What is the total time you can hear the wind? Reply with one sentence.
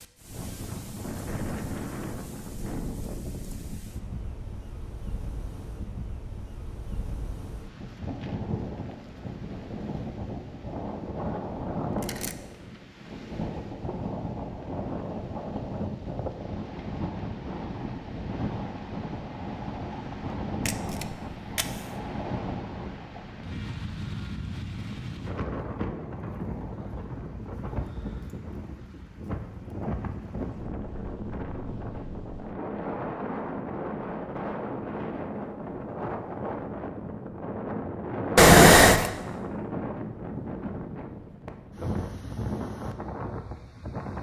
You can hear the wind for 44 seconds altogether.